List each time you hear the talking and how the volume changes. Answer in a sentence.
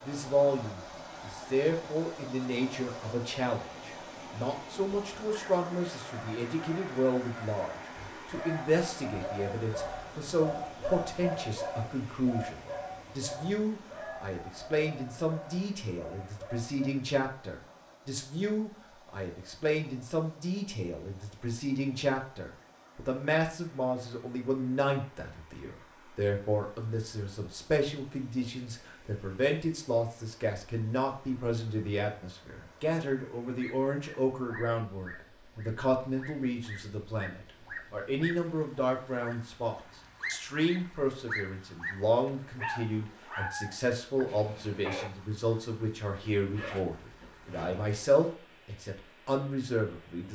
You can hear the talking from 0.0 to 50.3 s, at a steady volume.